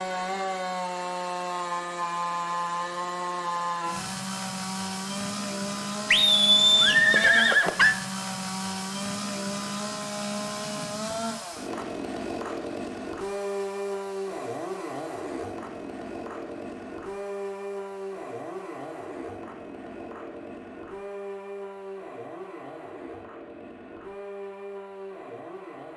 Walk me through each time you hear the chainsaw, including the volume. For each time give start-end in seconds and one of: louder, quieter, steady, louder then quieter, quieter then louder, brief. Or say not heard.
0.0-25.9 quieter.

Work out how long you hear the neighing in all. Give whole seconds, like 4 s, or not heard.
2 s.